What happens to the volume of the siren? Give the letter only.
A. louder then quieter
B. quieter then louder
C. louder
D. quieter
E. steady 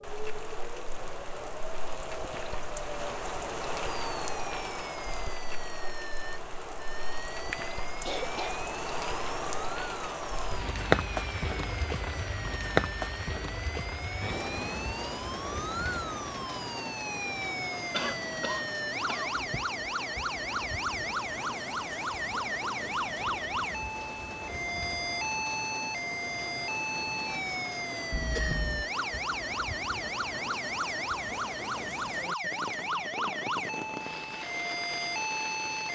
C.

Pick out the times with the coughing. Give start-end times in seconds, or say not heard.
7.5-8.6, 17.9-19.4, 28.1-28.9.